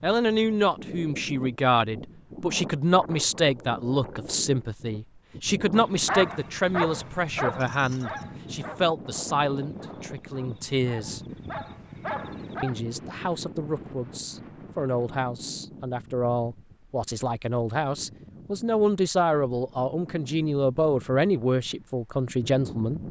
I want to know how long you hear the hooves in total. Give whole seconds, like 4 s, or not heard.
not heard.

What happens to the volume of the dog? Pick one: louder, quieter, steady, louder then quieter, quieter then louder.
quieter then louder.